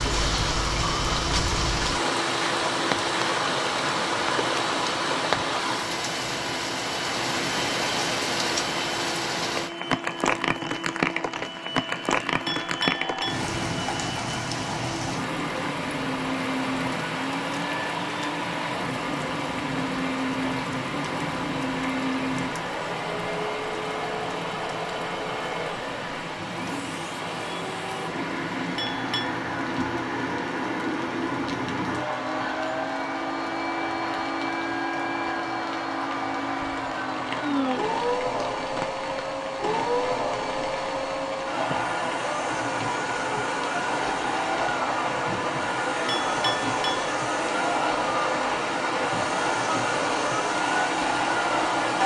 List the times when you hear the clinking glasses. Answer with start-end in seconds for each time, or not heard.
12.4-13.4, 28.8-29.3, 46.0-47.1.